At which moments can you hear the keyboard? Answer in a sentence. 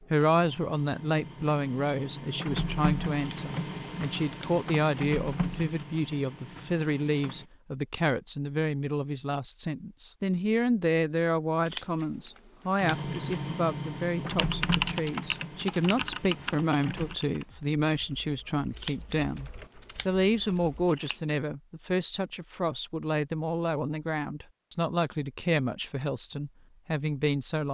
The keyboard can be heard from 14.3 to 20.9 s.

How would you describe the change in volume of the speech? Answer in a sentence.
The loudness of the speech stays about the same.